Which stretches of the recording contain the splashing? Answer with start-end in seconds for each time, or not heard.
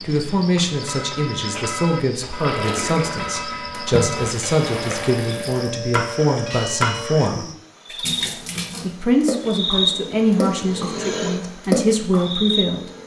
2.3-10.9, 11.6-12.2.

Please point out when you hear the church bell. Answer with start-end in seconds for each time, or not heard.
0.6-7.3.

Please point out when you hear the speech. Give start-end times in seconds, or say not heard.
0.0-7.5, 8.8-12.8.